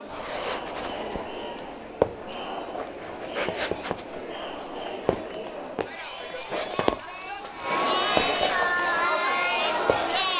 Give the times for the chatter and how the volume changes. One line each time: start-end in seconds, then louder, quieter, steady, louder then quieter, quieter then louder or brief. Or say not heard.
0.0-10.3 louder.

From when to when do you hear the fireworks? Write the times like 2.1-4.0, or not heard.
not heard.